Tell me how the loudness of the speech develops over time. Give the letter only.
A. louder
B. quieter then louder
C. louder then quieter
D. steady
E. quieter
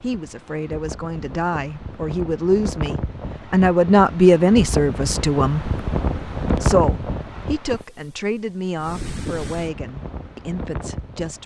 C.